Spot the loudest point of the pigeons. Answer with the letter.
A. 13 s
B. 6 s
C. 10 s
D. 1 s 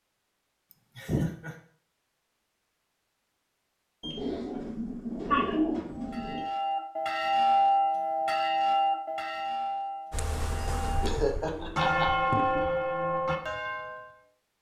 B.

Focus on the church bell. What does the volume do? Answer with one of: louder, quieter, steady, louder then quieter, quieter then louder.
quieter then louder.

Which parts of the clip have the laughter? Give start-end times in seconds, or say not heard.
0.7-1.6, 5.3-5.8, 11.0-12.1.